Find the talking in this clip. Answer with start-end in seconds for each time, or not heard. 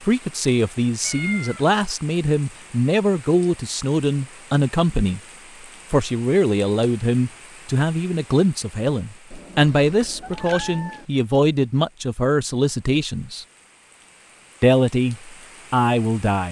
0.1-5.2, 5.9-13.4, 14.6-16.4.